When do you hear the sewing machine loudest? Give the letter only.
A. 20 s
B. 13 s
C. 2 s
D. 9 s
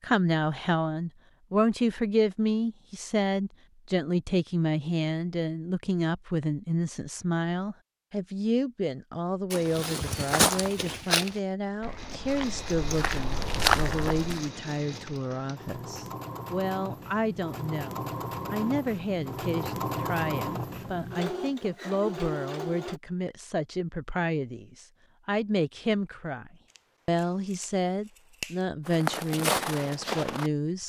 A.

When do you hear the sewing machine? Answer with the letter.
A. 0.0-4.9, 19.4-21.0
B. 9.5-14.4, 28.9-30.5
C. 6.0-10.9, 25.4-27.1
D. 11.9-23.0
D.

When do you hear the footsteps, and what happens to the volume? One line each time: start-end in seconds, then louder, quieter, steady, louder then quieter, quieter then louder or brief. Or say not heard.
9.5-14.4 quieter then louder
28.9-30.5 brief.